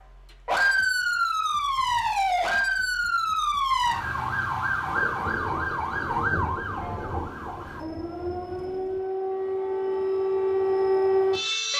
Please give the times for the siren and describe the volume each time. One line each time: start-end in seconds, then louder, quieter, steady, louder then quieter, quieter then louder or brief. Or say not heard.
0.0-11.7 quieter then louder.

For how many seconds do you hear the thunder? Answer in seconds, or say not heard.
4 s.